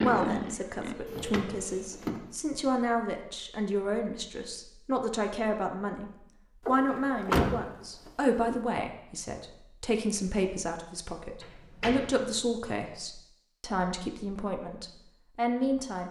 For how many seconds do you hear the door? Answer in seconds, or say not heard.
4 s.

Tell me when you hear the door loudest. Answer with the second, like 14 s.
7 s.